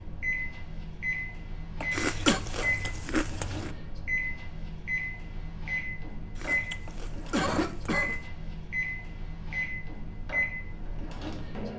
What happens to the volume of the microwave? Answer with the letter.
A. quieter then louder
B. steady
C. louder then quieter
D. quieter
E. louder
B.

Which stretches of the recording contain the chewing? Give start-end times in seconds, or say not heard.
1.9-3.7, 6.3-8.3.